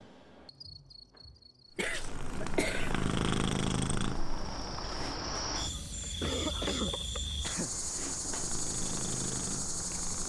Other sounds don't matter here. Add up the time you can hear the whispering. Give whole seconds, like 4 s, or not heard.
not heard.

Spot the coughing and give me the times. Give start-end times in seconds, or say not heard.
1.8-3.0, 6.0-7.7.